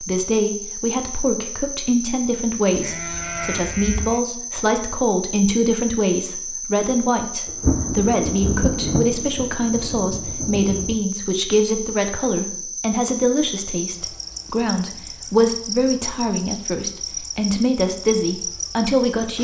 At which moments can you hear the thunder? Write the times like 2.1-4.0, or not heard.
7.5-11.0.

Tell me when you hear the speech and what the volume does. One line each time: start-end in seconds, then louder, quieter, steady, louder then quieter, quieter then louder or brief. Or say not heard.
0.0-19.3 steady.